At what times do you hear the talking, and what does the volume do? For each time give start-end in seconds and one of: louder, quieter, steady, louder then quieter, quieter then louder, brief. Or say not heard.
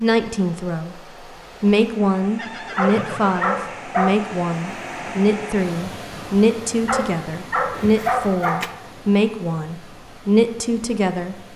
0.0-11.3 steady.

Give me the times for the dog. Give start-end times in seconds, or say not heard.
2.8-4.2, 6.8-8.6.